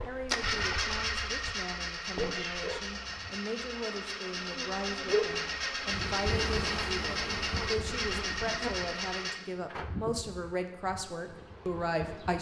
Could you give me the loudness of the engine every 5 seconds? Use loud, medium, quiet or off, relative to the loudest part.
loud, loud, off.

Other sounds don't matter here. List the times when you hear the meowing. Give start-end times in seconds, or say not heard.
2.1-3.4.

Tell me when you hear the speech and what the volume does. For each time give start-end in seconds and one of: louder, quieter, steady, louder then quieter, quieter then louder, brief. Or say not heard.
0.0-12.3 louder.